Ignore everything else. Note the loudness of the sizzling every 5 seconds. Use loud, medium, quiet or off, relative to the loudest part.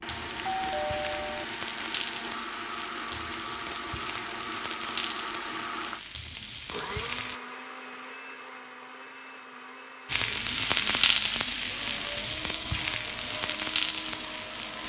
medium, medium, loud.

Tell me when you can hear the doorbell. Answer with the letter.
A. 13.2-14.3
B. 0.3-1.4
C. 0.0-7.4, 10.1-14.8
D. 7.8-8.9
B.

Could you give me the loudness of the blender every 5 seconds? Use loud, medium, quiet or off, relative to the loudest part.
loud, loud, medium.